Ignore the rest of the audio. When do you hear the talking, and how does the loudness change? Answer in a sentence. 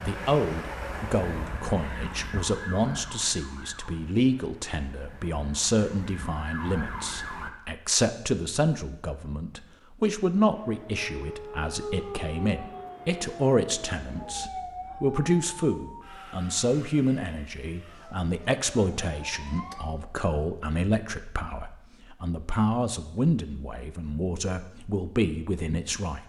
You can hear the talking from 0.0 to 26.2 s, at a steady volume.